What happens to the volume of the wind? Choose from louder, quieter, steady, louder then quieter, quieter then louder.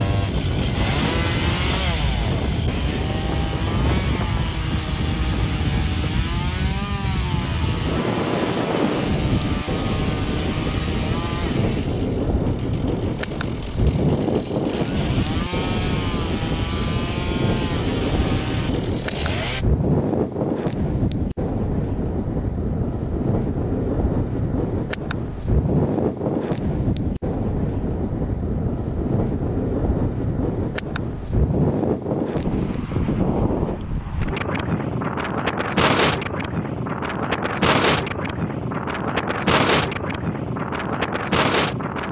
steady.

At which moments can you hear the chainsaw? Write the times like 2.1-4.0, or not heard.
0.0-19.6.